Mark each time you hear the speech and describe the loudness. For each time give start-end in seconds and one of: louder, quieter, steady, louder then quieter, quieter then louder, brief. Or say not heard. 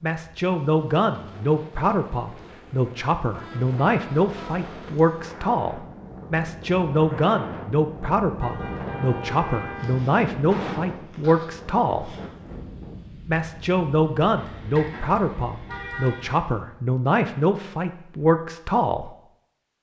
0.0-12.2 steady
13.2-19.1 steady.